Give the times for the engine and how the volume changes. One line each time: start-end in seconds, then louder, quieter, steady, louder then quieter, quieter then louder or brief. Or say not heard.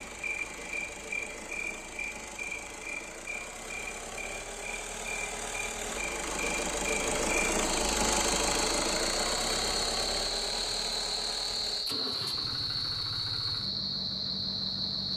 0.0-15.1 louder then quieter.